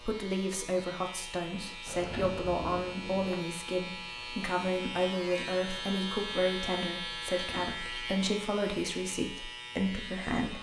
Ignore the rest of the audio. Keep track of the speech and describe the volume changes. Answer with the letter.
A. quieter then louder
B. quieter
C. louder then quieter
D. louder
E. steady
E.